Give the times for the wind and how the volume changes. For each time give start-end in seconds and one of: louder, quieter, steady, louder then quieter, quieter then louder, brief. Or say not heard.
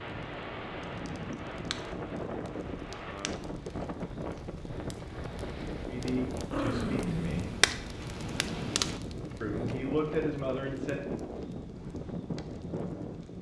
0.0-13.3 steady.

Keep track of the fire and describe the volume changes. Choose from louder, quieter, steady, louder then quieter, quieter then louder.
louder then quieter.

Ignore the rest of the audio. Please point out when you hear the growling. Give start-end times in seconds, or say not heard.
6.5-7.7.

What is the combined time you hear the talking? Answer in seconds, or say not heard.
3 s.